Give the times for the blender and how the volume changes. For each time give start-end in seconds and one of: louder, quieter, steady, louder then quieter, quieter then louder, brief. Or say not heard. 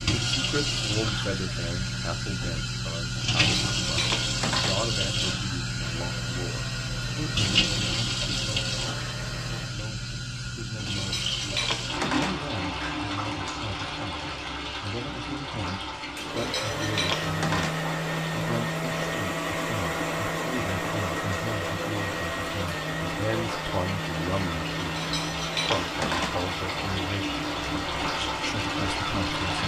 5.8-9.8 steady
15.9-29.6 quieter.